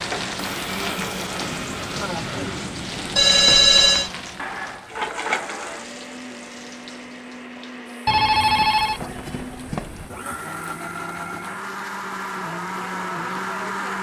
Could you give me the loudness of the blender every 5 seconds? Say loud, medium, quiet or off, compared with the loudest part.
loud, medium, loud.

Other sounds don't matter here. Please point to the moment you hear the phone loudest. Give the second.
4 s.